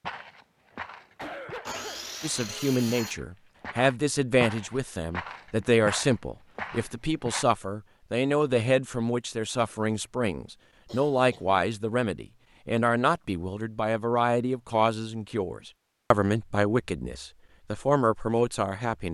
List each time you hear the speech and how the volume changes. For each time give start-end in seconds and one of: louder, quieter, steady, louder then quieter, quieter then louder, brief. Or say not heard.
2.2-19.0 steady.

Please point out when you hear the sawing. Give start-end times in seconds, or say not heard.
1.6-3.1.